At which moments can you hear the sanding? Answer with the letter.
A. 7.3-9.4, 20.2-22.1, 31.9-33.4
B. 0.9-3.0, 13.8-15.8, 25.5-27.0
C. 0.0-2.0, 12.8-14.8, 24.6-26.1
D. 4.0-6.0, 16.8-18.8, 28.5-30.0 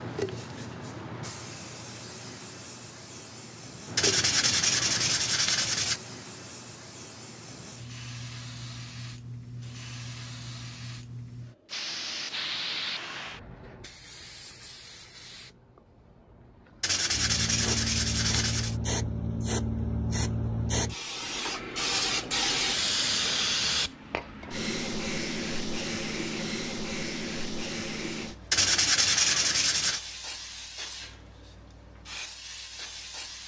D.